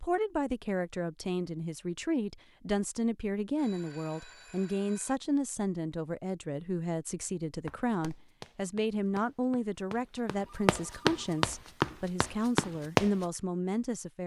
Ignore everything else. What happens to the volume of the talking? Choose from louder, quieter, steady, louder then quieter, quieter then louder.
steady.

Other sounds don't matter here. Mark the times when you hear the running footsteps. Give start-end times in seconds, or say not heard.
7.7-13.2.